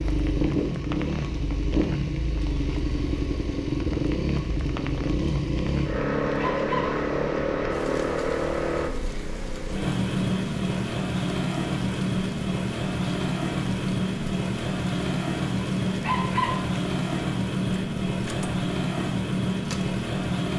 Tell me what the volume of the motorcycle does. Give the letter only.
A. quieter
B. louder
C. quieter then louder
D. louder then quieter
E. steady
E.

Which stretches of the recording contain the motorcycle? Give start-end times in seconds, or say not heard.
0.0-20.5.